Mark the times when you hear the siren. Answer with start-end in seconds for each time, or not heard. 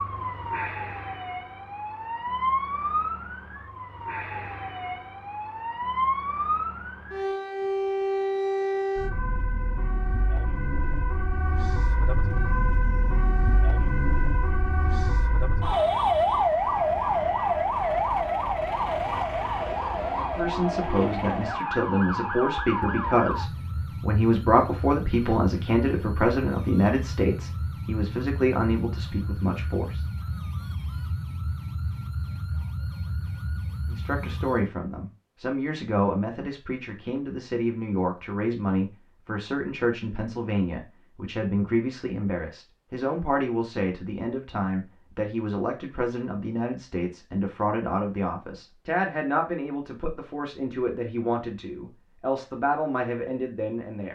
0.0-34.7.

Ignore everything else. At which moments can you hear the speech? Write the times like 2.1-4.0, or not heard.
20.3-30.1, 33.9-54.1.